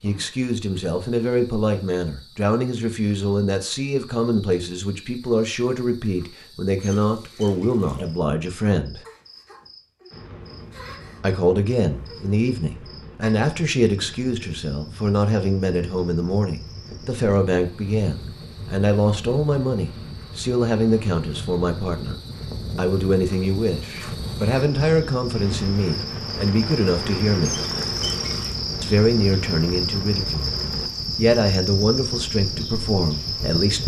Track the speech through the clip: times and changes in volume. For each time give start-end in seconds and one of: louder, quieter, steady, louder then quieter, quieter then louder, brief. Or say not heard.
0.0-9.0 steady
11.2-27.6 steady
28.8-30.6 brief
31.1-33.8 brief.